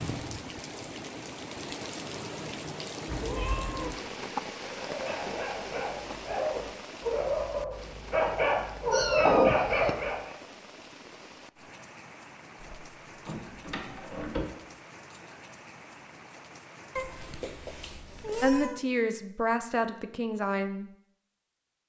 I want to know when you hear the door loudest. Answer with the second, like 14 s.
14 s.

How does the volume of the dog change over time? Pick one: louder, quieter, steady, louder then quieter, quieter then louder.
louder.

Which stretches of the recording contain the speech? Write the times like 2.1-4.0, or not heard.
18.4-20.9.